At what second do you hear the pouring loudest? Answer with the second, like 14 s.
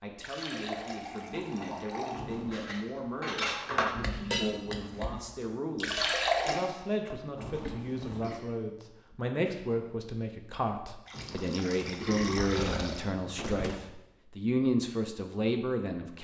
6 s.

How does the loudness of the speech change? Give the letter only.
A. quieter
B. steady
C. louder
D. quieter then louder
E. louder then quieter
C.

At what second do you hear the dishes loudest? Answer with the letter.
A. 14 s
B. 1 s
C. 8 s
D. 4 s
D.